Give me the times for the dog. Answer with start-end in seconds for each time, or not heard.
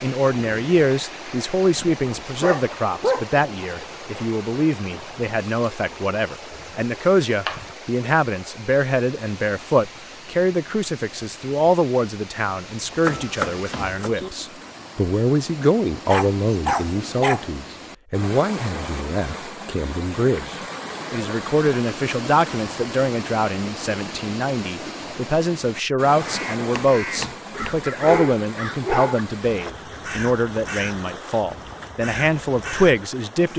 2.4-3.2, 16.1-17.4, 27.5-29.2.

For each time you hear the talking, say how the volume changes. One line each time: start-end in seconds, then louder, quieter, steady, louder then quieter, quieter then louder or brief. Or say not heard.
0.0-33.5 steady.